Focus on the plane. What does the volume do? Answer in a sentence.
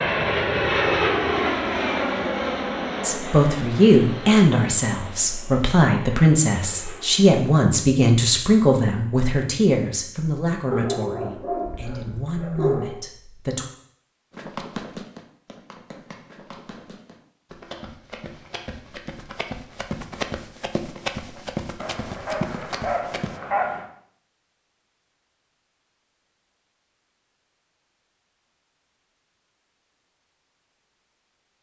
The loudness of the plane goes down.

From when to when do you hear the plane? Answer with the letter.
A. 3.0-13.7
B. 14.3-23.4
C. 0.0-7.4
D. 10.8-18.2
C.